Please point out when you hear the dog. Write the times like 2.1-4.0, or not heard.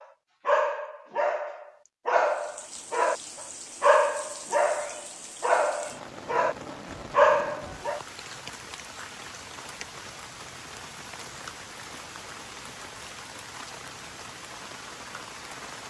0.5-3.1, 3.8-8.0.